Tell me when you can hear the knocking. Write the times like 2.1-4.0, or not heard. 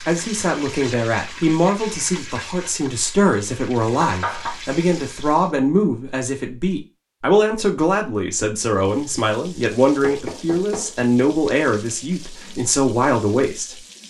4.0-4.6, 10.0-10.9.